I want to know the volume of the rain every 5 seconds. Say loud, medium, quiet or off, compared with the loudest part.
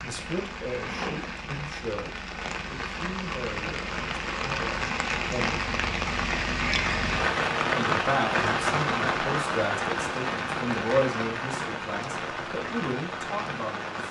medium, loud, medium.